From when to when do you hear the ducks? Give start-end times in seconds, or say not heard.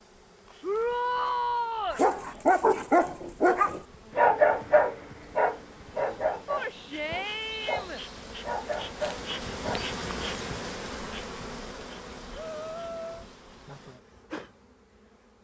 not heard.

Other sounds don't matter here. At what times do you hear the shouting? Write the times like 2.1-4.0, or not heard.
0.6-2.0, 6.5-8.0, 12.3-13.2.